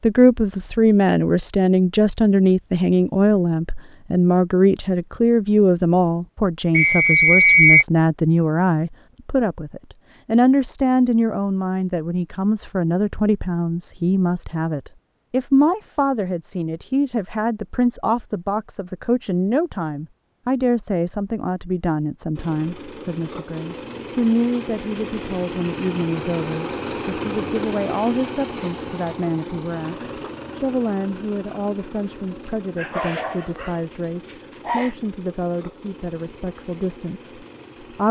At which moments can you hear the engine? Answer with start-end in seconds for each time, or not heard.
22.4-38.0.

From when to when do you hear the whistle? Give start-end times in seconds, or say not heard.
6.8-7.8.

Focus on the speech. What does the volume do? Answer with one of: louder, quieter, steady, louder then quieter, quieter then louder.
quieter.